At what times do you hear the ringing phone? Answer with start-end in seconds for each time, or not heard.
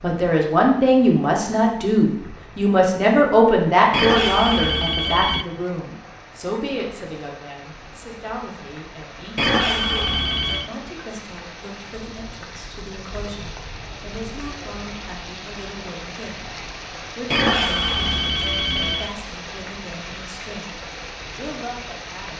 3.9-5.5, 9.3-10.7, 17.3-19.1.